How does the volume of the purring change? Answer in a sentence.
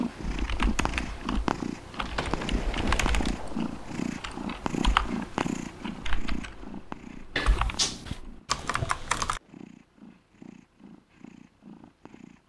The loudness of the purring goes down.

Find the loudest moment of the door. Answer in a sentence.
The volume of the door peaks at 8 seconds.